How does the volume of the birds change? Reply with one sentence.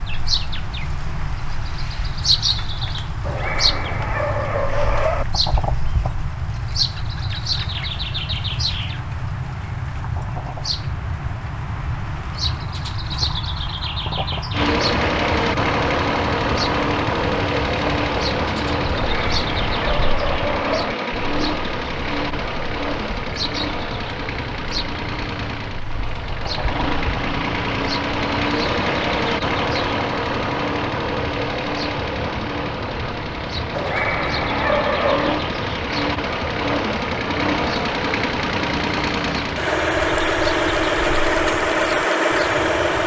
The loudness of the birds goes down.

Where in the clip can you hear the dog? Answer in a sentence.
You can hear the dog from 3.2 to 5.2 s, from 19.1 to 20.9 s and from 33.7 to 35.4 s.